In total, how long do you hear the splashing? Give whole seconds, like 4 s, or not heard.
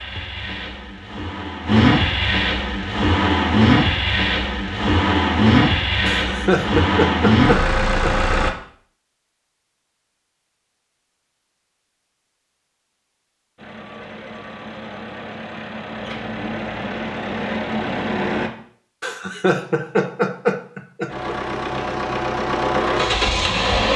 not heard.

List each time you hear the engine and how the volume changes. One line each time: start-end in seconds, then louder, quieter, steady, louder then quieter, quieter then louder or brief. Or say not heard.
0.0-8.5 steady
13.6-18.5 louder
21.1-23.9 brief.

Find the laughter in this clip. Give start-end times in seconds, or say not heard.
6.0-8.2, 19.0-21.4.